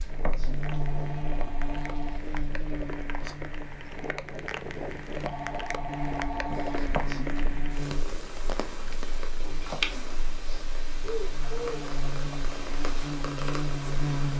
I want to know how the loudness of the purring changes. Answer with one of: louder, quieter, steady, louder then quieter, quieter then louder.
louder.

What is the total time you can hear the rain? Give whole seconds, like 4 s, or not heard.
9 s.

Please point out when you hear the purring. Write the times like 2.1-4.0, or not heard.
0.0-14.3.